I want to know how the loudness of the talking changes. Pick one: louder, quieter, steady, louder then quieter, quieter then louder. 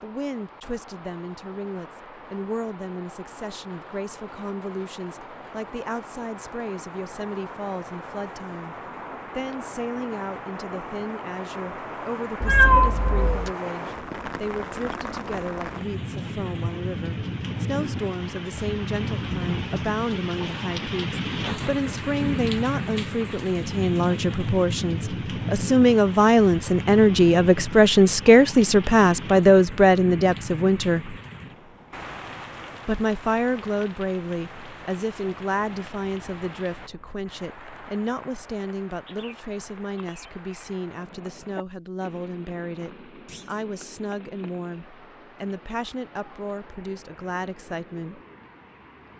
louder then quieter.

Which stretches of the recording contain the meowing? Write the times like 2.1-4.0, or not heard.
12.4-13.5.